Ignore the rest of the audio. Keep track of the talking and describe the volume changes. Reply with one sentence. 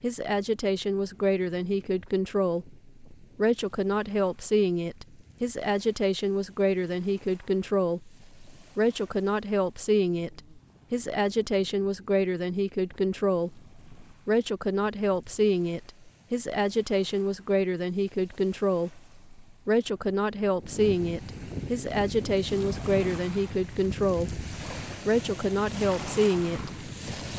The loudness of the talking stays about the same.